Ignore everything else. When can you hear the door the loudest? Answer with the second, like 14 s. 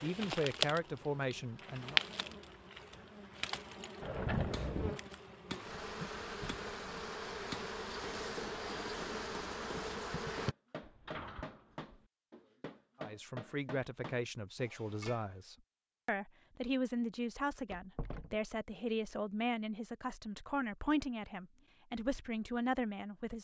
4 s.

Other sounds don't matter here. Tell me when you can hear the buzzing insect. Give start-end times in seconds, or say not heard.
0.0-10.6.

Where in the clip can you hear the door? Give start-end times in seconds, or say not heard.
4.0-5.0, 10.8-12.1, 17.6-18.4.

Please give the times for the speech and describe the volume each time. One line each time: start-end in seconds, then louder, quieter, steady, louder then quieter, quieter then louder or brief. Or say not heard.
0.0-2.0 brief
13.0-23.4 steady.